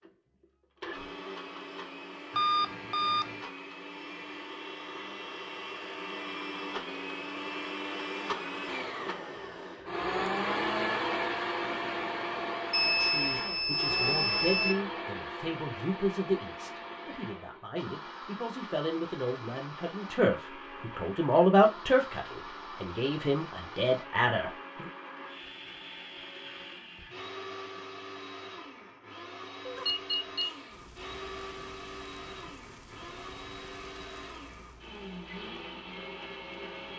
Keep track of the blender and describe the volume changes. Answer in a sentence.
The loudness of the blender goes up, then down.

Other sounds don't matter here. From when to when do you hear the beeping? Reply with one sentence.
The beeping can be heard from 2.3 to 3.4 s, from 12.7 to 14.8 s and from 29.6 to 30.6 s.